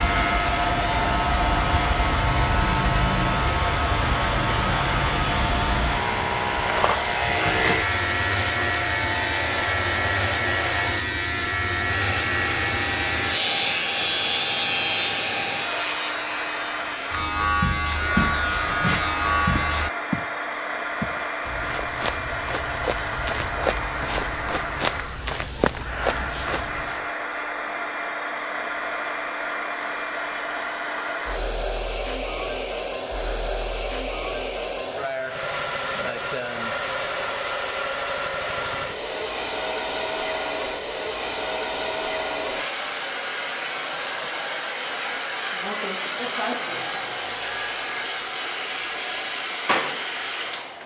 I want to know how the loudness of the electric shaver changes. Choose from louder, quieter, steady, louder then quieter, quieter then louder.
steady.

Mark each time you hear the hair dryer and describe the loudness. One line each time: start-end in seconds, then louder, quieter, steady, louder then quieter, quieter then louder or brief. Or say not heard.
0.0-50.8 steady.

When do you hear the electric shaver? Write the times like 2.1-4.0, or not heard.
0.0-19.9.